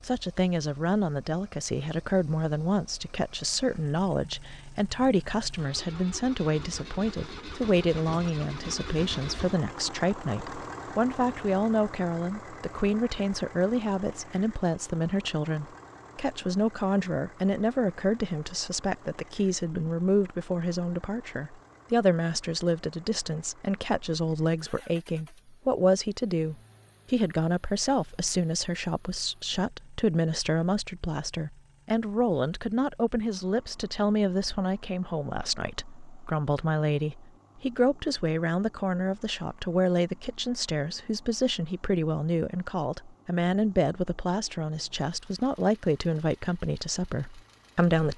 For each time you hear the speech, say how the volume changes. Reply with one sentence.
You can hear the speech from 0.0 to 48.1 s, at a steady volume.